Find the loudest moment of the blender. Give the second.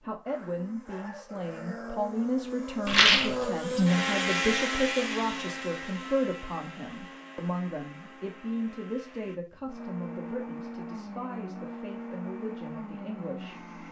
4 s.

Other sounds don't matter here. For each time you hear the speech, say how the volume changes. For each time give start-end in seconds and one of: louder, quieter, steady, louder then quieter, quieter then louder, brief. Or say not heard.
0.0-13.8 quieter.